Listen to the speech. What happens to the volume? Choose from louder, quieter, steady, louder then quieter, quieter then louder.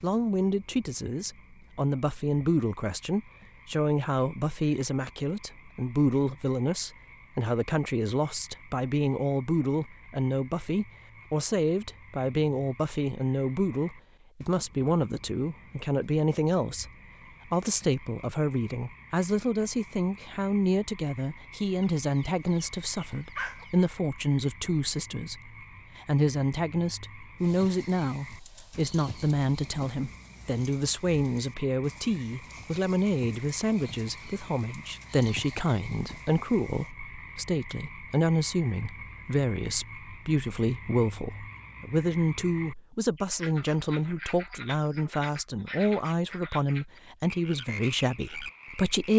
steady.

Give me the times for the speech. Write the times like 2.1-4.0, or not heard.
0.0-16.9, 17.4-49.1.